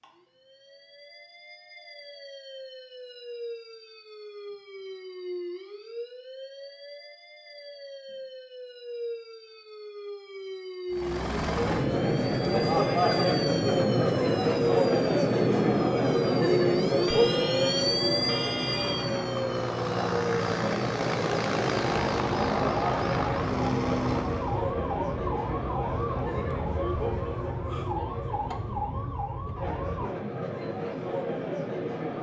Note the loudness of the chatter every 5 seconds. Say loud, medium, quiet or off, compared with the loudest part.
off, off, loud, loud, medium, medium, medium.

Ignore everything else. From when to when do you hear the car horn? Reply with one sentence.
You can hear the car horn from 17.1 to 19.3 s.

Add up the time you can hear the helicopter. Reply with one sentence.
The helicopter can be heard for 14 seconds in total.